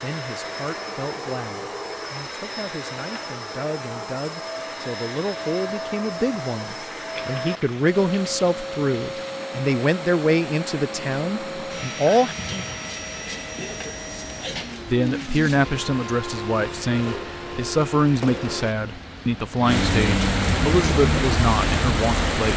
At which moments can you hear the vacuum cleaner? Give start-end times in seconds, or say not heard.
0.0-18.8.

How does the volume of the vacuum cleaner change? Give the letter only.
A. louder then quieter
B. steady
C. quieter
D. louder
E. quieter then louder
B.